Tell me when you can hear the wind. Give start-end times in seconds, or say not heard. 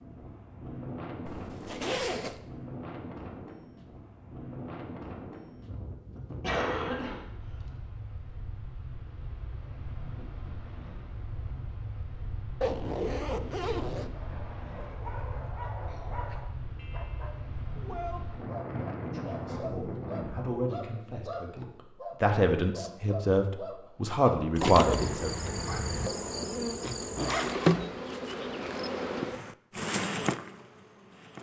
0.0-20.6.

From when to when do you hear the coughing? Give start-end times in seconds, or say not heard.
6.4-7.7.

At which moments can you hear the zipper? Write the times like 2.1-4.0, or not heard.
1.2-2.4, 12.6-14.1, 26.8-27.6.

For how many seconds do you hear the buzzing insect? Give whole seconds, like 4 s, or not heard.
7 s.